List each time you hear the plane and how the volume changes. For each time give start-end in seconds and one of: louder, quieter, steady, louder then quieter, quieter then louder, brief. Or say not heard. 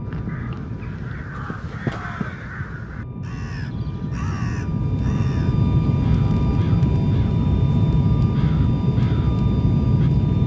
0.0-10.4 louder.